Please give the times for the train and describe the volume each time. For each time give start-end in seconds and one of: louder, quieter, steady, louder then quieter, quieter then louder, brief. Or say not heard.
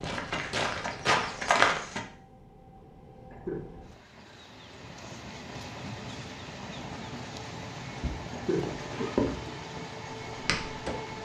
0.1-11.1 louder.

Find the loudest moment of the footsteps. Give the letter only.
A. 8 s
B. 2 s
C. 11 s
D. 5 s
B.